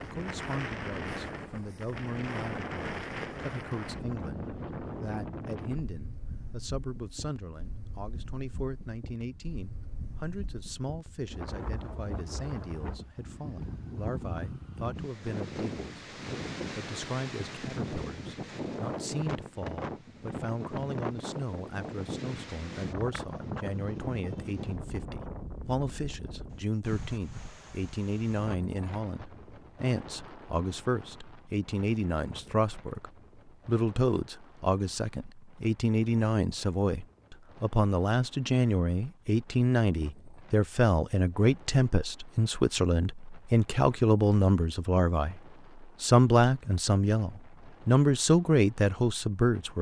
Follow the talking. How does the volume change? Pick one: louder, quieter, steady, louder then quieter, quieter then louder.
louder.